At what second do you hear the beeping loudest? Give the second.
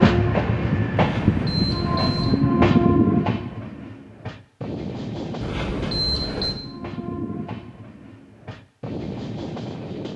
6 s.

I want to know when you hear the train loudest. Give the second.
3 s.